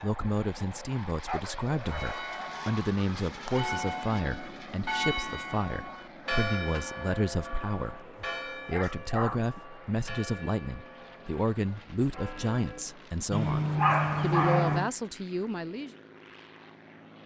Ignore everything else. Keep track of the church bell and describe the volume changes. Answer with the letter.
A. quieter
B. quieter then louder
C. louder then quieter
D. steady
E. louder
A.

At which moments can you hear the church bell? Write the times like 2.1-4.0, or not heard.
1.9-12.9.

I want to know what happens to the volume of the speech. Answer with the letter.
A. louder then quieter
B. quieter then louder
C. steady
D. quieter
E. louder
C.